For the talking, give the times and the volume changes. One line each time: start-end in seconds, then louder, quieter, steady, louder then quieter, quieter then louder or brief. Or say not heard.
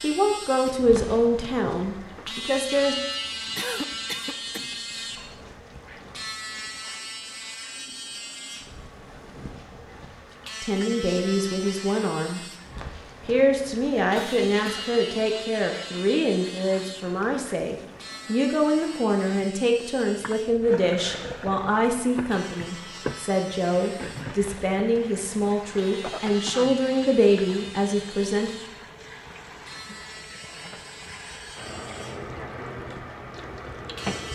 0.0-3.0 brief
10.6-12.4 brief
13.2-28.5 steady.